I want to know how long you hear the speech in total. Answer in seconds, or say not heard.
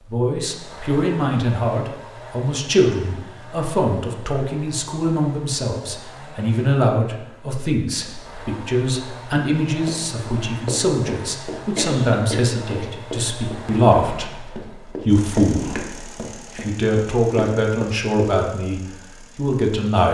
20 s.